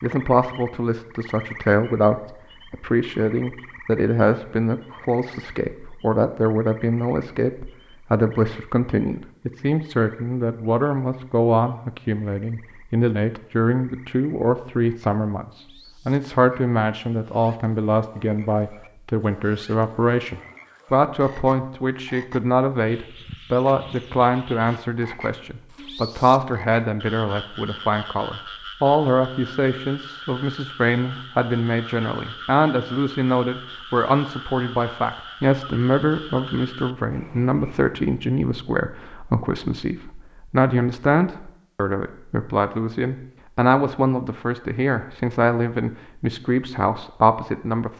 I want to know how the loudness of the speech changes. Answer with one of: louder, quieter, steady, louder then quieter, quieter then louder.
steady.